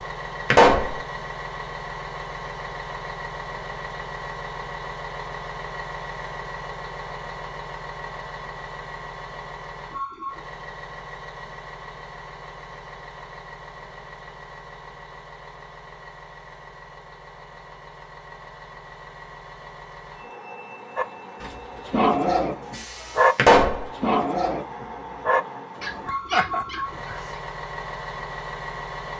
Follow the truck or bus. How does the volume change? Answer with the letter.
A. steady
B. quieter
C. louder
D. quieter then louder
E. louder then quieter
D.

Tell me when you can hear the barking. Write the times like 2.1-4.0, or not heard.
20.9-27.4.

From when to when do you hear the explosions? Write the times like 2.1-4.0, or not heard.
0.5-1.0, 23.4-23.9.